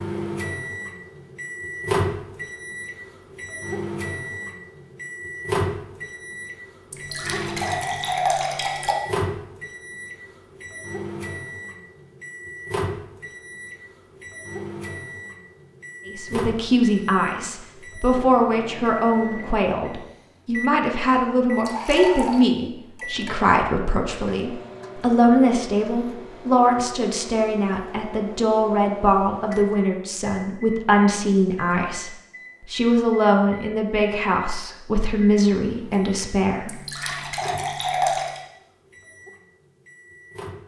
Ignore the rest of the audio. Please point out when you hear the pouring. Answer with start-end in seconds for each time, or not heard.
6.9-8.9, 21.6-22.4, 36.6-38.4.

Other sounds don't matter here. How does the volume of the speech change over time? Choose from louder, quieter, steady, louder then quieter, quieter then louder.
steady.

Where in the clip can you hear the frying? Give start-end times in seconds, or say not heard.
not heard.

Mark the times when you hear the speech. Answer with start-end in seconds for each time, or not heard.
16.1-32.1, 32.7-36.7.